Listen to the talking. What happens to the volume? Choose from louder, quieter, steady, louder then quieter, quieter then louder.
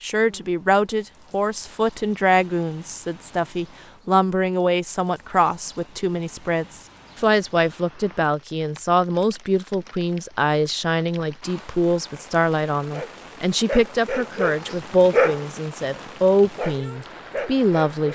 steady.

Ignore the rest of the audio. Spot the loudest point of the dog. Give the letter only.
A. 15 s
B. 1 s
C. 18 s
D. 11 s
A.